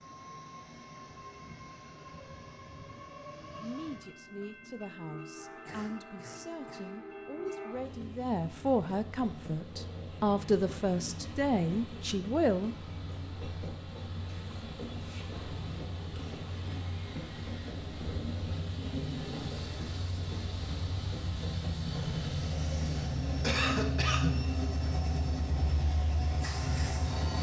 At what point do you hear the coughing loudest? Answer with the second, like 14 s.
24 s.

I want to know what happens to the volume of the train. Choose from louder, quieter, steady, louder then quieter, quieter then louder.
louder.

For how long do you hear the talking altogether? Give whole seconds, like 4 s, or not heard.
9 s.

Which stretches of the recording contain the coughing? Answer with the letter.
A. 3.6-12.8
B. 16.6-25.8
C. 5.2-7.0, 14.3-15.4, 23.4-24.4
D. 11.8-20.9
C.